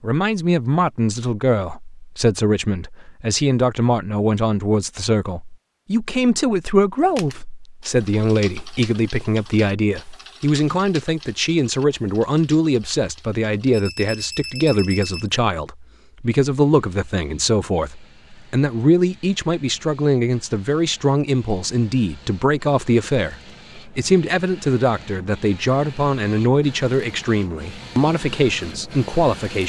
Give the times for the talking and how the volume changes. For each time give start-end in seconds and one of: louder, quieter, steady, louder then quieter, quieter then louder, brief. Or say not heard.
0.0-29.6 steady.